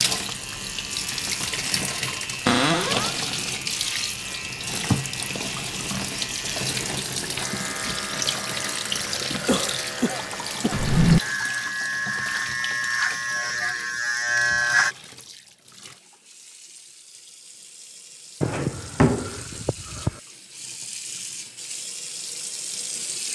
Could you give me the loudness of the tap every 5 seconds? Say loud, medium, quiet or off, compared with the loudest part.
loud, loud, medium, quiet, medium.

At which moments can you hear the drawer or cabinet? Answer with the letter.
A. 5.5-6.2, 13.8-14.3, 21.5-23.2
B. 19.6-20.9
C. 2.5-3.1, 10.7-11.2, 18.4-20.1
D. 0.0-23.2
C.